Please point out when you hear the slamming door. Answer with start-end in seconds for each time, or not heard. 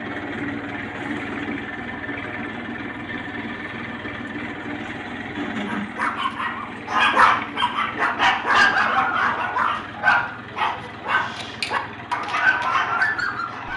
not heard.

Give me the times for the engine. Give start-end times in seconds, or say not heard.
0.0-13.7.